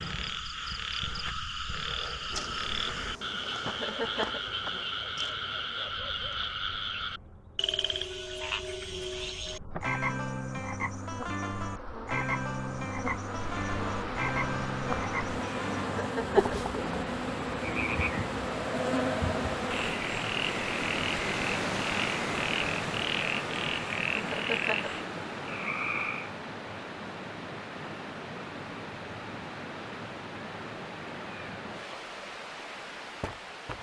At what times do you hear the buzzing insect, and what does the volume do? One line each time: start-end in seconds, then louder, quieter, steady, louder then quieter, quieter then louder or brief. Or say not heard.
2.3-19.9 quieter then louder.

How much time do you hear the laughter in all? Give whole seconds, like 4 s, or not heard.
2 s.